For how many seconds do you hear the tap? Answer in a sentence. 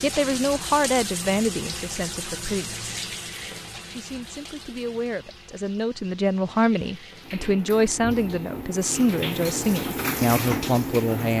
You can hear the tap for 11 seconds altogether.